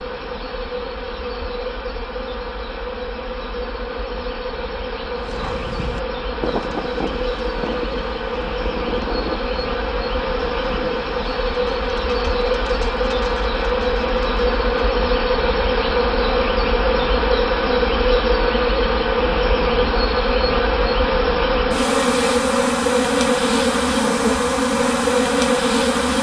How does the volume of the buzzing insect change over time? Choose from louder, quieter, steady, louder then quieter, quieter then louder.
louder.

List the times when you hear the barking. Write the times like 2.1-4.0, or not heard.
not heard.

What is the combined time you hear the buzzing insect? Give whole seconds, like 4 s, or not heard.
26 s.